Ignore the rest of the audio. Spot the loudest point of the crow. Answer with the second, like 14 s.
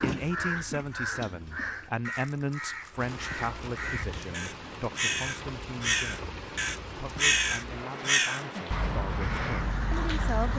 7 s.